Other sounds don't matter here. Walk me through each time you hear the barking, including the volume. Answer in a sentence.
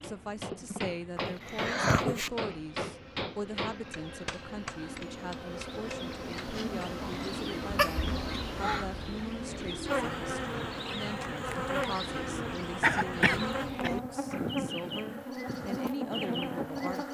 You can't hear the barking here.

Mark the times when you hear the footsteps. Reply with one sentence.
You can't hear the footsteps here.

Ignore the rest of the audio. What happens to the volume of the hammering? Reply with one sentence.
The loudness of the hammering goes down.